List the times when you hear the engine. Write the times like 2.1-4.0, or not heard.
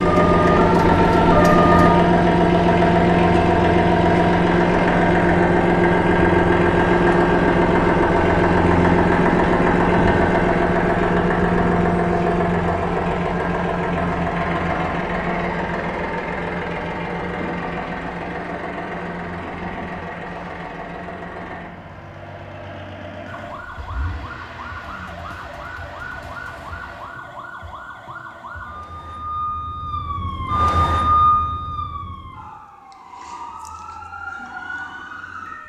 0.0-27.2.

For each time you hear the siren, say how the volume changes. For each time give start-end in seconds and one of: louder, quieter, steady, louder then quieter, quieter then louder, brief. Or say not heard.
0.0-1.9 brief
23.2-35.6 louder then quieter.